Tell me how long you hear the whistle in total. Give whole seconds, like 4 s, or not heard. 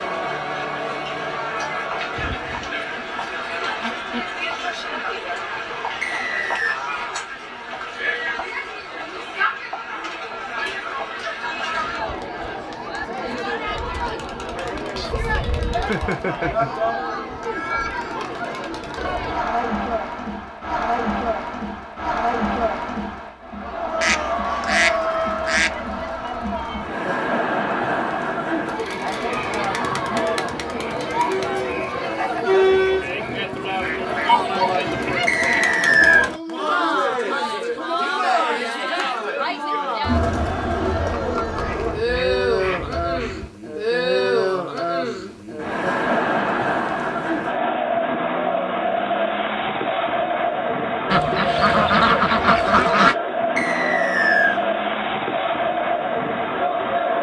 3 s.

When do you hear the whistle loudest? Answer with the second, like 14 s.
36 s.